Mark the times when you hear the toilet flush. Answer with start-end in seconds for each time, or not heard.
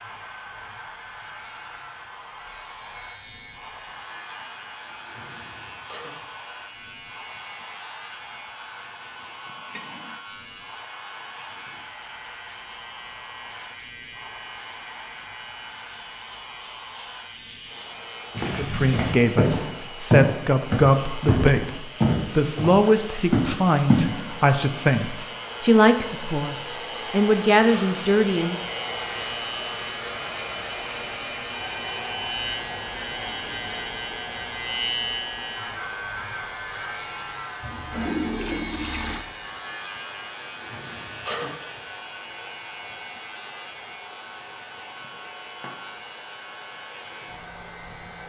9.7-10.2, 37.6-39.2.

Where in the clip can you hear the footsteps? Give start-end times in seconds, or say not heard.
18.4-24.0.